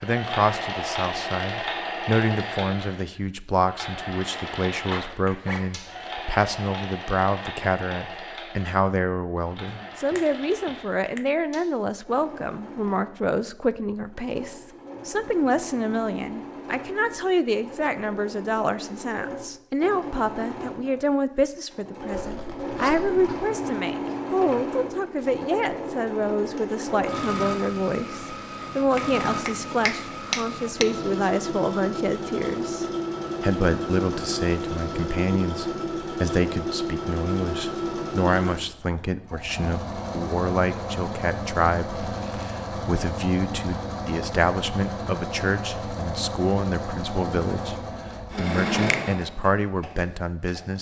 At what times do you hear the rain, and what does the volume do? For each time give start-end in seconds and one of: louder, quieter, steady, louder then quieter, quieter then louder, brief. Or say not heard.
not heard.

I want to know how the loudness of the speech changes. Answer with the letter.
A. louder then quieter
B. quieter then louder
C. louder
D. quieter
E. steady
E.